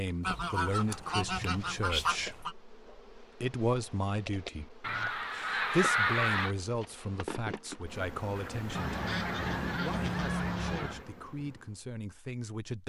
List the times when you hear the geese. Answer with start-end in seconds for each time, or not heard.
0.2-2.5, 4.8-6.5, 8.7-11.1.